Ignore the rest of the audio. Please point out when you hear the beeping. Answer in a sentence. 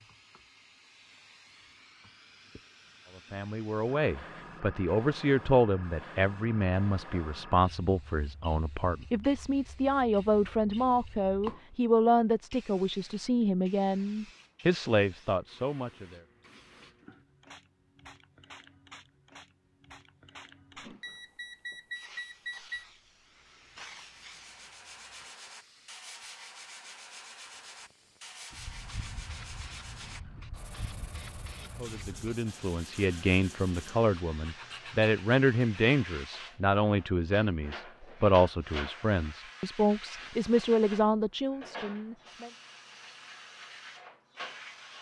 The beeping can be heard from 20.8 to 22.9 s.